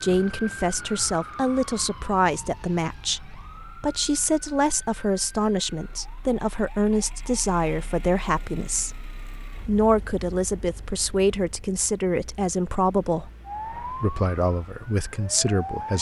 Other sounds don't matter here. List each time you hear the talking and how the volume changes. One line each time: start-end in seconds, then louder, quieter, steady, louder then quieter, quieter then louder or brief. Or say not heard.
0.0-15.9 steady.